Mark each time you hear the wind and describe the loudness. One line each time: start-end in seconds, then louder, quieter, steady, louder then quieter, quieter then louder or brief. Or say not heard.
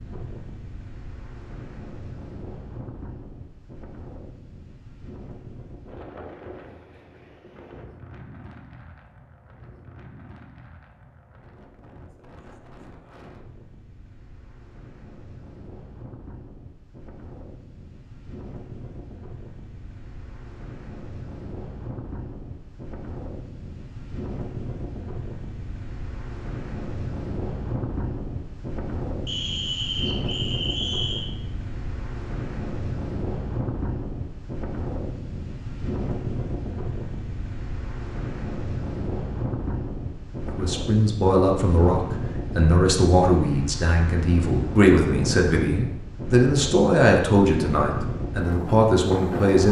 0.0-49.6 louder.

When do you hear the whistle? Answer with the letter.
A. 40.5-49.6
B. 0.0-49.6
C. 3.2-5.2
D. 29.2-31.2
D.